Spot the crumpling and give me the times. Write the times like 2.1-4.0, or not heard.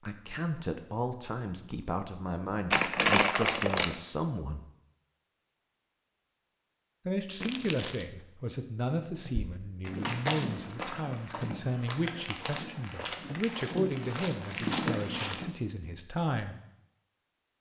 2.7-4.0, 7.4-8.1, 14.2-15.4.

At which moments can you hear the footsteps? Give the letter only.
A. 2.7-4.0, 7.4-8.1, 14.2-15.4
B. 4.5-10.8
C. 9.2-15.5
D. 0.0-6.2
C.